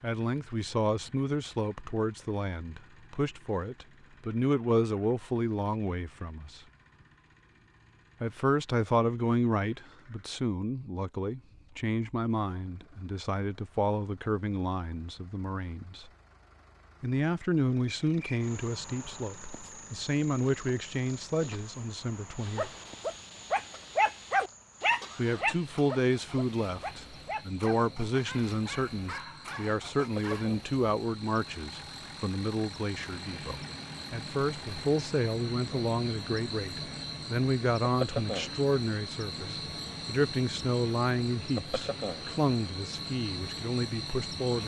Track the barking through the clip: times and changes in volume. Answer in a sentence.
The barking can be heard from 22.4 to 30.5 s, getting quieter.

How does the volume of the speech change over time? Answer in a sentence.
The loudness of the speech stays about the same.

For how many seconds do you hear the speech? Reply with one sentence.
The speech can be heard for 40 seconds in total.